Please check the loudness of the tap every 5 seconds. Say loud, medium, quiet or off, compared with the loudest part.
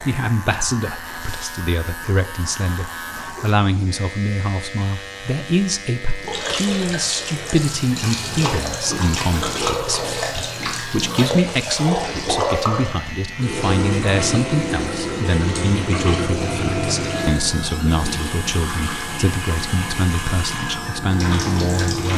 quiet, loud, loud, loud, loud.